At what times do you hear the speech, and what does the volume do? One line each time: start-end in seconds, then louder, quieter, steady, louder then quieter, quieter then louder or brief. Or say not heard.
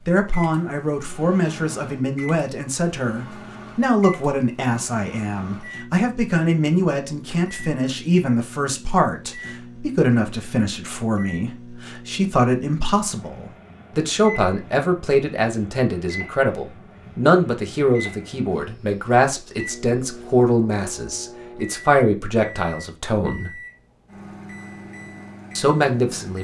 0.1-23.6 steady
25.6-26.4 brief.